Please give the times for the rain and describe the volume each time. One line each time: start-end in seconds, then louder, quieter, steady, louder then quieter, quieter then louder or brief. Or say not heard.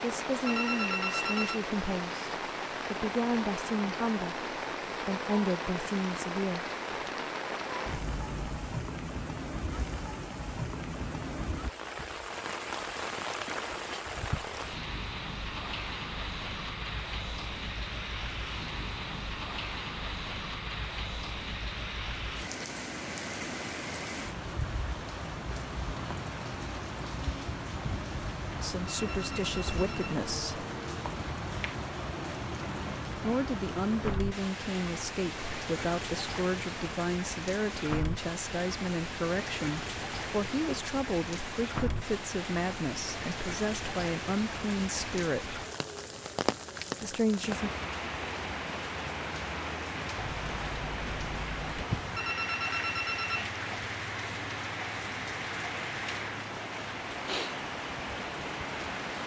0.0-59.2 steady.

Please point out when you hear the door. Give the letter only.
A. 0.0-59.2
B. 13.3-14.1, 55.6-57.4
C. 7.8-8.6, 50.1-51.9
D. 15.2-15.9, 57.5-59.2
C.